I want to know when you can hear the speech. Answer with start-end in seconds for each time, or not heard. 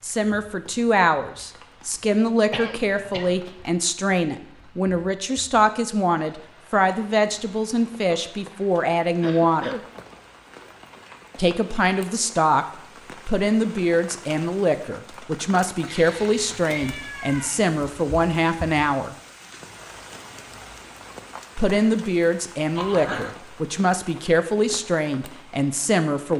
0.0-9.8, 11.3-12.7, 13.2-19.1, 21.6-26.3.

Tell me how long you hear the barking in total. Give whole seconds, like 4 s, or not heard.
not heard.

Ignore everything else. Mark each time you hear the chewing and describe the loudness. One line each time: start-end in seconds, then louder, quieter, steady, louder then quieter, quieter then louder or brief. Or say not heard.
not heard.